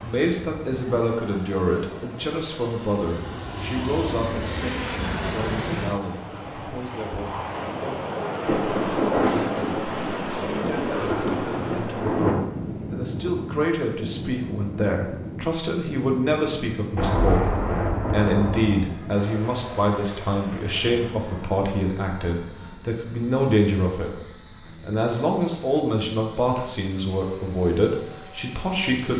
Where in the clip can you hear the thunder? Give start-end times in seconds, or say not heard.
8.4-12.4, 16.9-18.8.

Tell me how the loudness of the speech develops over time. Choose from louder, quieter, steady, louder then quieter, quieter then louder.
quieter then louder.